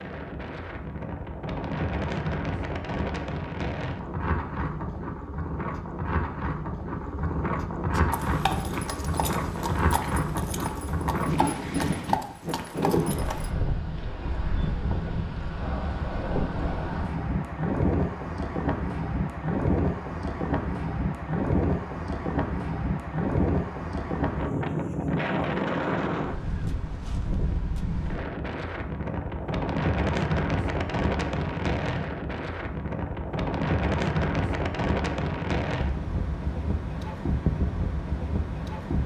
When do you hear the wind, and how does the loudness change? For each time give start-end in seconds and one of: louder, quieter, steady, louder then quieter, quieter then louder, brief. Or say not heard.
0.0-39.0 steady.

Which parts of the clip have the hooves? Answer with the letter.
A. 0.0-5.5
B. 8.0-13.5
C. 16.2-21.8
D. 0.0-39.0
B.